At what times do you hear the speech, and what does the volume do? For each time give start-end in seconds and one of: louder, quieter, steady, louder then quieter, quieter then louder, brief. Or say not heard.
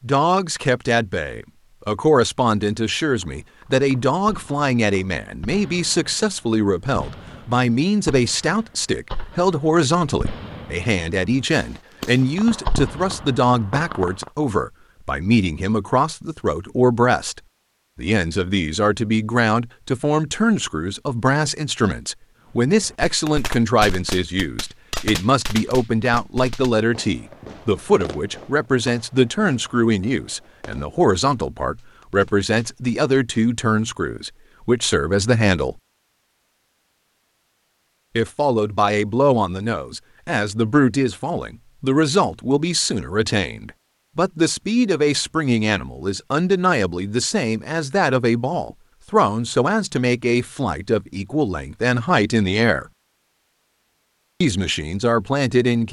0.0-35.8 steady
38.1-52.9 steady
54.4-55.8 brief.